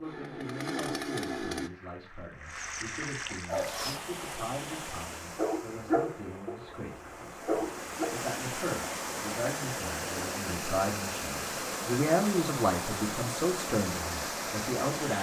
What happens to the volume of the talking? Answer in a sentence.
The volume of the talking goes up.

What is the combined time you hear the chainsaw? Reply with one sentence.
The chainsaw can be heard for 2 seconds in total.